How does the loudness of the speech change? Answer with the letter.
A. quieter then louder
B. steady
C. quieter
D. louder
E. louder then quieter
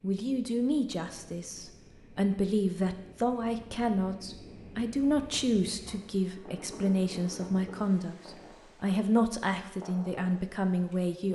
B.